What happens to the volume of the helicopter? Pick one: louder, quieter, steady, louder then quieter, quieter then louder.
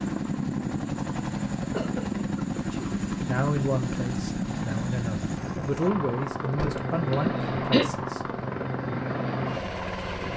steady.